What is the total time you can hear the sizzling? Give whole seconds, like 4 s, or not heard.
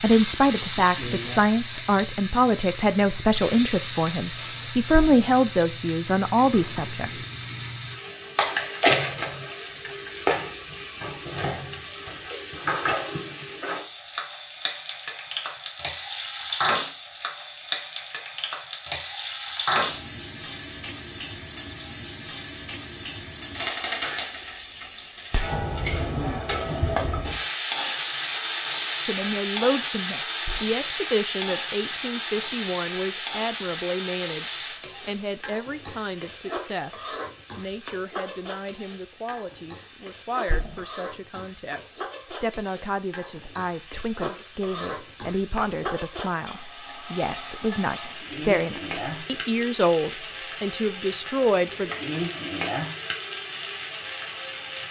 55 s.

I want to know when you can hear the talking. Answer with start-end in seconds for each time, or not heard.
0.0-7.2, 29.1-52.0.